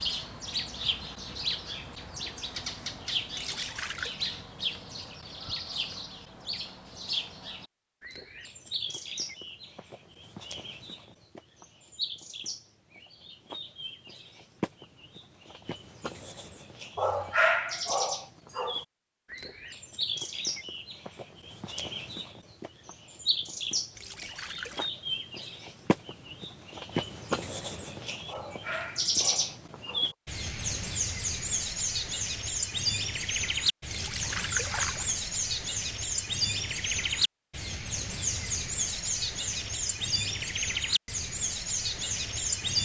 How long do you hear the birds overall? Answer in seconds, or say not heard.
43 s.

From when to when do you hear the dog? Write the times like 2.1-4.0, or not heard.
16.9-18.8, 28.2-30.1.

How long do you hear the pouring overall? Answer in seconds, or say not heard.
3 s.